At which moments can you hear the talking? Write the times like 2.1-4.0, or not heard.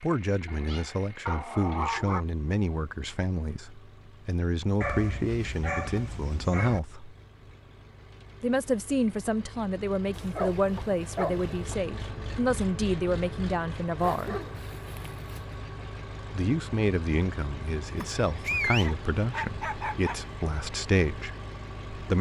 0.0-7.2, 8.4-14.3, 16.3-22.1.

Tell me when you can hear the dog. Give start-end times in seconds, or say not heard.
0.5-2.2, 4.8-6.8, 10.2-11.8, 14.0-15.4, 17.9-20.4.